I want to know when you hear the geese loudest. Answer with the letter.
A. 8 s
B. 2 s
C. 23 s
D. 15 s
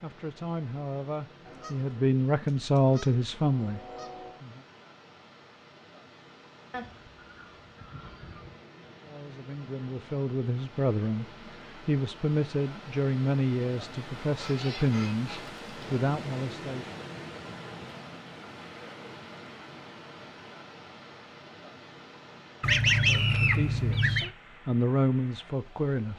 C.